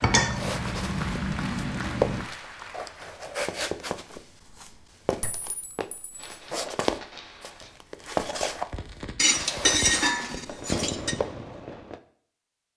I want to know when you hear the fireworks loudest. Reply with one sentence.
The volume of the fireworks peaks at 11 seconds.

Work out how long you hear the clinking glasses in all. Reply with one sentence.
You can hear the clinking glasses for 5 seconds altogether.